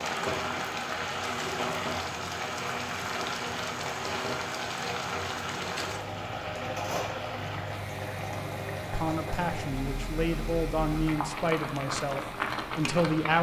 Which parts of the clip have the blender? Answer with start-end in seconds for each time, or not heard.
0.0-13.3.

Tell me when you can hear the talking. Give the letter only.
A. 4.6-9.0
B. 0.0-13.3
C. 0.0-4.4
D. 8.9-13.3
D.